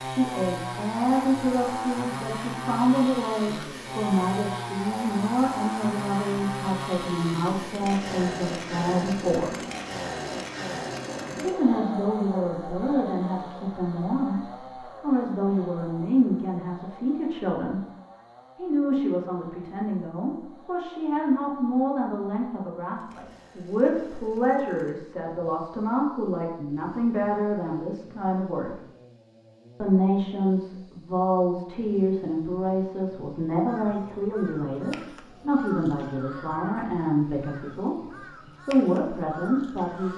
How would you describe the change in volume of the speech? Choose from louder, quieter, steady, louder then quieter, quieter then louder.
steady.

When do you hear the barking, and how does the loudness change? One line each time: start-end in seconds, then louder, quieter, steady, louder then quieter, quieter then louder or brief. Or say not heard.
not heard.